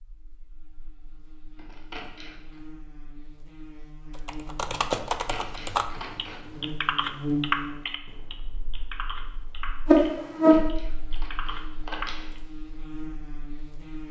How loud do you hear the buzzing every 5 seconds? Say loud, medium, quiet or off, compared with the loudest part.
quiet, loud, loud.